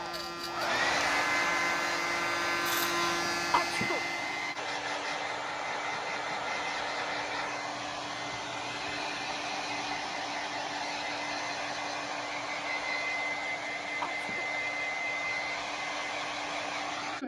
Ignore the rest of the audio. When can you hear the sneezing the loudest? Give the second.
4 s.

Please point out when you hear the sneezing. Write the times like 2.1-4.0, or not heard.
3.5-4.0, 14.0-14.5.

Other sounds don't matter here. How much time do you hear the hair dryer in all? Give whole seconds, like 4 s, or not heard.
17 s.